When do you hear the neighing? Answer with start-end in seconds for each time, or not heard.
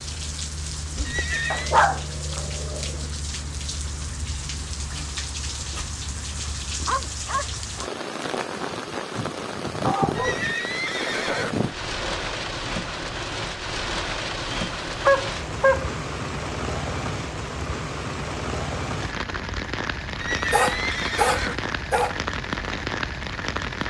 1.1-1.8, 10.2-11.5, 20.1-21.6.